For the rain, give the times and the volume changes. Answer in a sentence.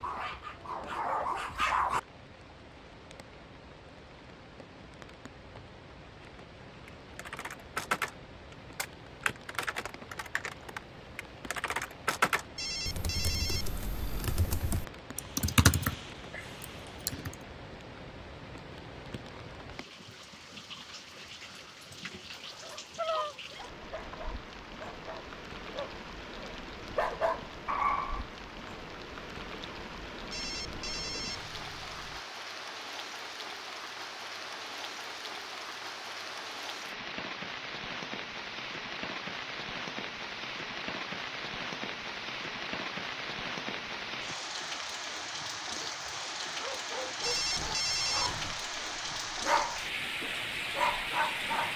The rain can be heard from 0.0 to 51.7 s, getting louder.